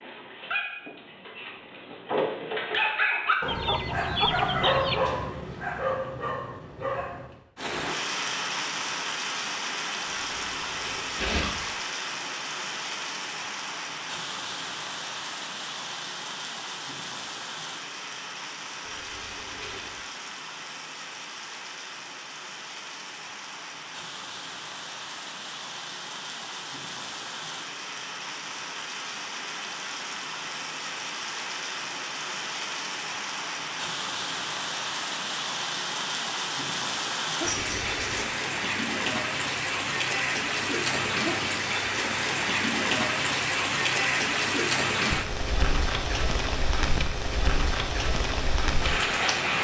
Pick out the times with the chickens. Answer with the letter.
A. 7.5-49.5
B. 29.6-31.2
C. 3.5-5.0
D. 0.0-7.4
C.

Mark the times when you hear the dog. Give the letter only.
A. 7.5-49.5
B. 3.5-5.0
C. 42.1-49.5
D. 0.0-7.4
D.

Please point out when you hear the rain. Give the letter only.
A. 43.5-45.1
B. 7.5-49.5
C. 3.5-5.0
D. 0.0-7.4
B.